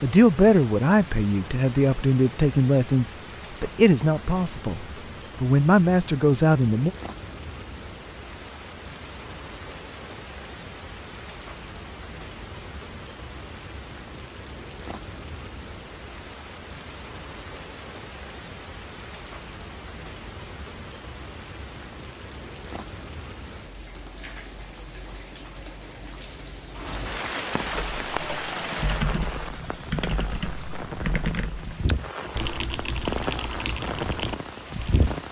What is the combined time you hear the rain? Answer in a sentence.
The rain can be heard for 35 seconds in total.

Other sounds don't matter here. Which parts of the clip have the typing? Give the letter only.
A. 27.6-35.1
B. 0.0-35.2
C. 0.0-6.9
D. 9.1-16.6
A.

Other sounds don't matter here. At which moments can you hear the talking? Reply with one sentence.
You can hear the talking from 0.0 to 6.9 s.